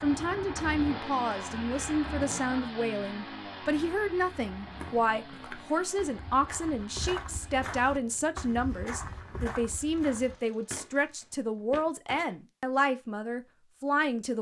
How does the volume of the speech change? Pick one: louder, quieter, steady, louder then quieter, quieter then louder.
steady.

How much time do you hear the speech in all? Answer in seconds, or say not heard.
14 s.